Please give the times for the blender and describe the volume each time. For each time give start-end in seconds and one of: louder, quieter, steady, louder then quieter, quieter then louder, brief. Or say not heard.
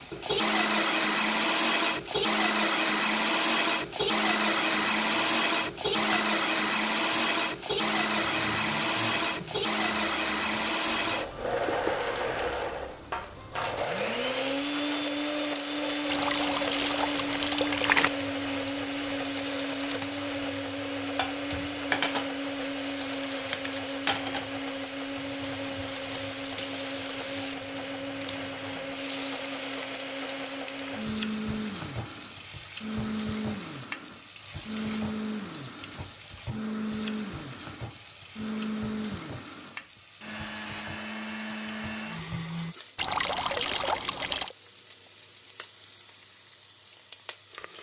0.0-42.8 quieter.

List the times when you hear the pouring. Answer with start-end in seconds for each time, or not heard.
16.1-18.1, 43.0-44.5.